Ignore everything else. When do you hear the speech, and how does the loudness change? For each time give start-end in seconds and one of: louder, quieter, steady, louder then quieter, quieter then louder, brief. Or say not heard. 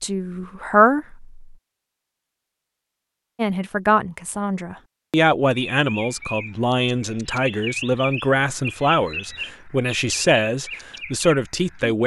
0.0-1.4 brief
3.4-12.0 steady.